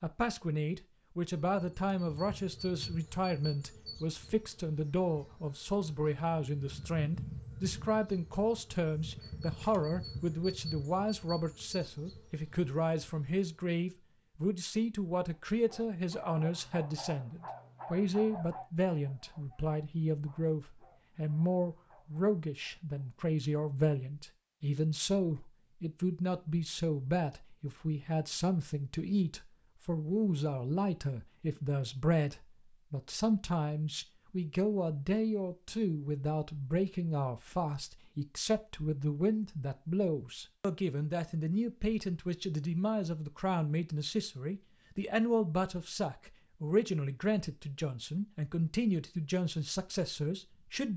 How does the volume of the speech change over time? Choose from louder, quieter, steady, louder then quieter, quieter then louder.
steady.